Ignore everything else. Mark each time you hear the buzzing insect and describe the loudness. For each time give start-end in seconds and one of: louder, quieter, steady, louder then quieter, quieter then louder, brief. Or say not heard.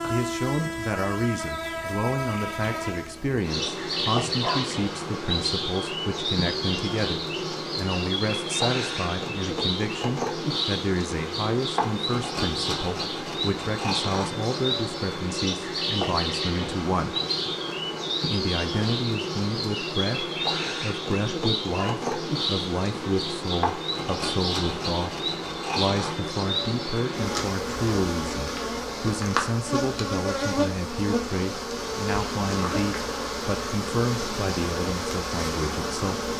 0.0-36.3 steady.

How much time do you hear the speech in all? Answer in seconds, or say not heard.
35 s.